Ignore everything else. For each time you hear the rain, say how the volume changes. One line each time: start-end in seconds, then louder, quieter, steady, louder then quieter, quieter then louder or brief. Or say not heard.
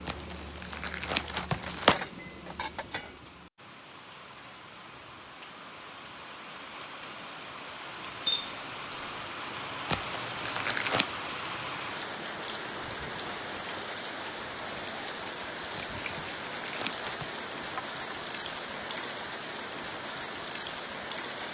0.0-21.4 louder.